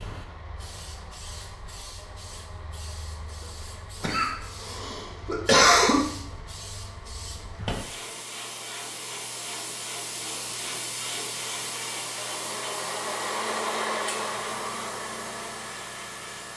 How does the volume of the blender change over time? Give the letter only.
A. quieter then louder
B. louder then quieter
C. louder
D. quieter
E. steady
C.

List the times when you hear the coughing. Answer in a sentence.
The coughing can be heard from 4.0 to 6.0 s.